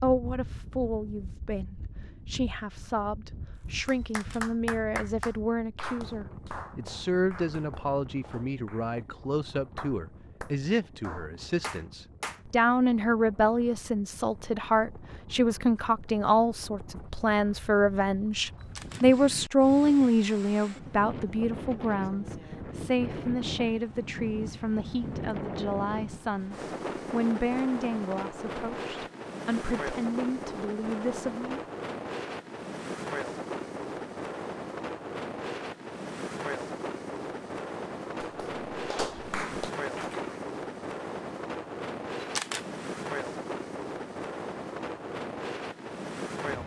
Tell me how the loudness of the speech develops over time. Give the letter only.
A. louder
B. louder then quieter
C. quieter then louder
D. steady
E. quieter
B.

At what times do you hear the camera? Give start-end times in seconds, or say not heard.
4.0-4.5, 18.6-19.1, 42.2-42.6.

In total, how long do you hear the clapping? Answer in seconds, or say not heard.
11 s.